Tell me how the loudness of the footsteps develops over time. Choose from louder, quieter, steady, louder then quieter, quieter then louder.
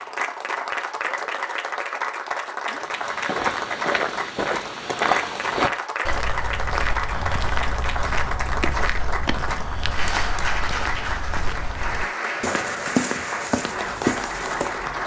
quieter then louder.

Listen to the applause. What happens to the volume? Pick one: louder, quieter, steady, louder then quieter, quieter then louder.
steady.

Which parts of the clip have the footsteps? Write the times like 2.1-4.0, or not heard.
2.8-14.8.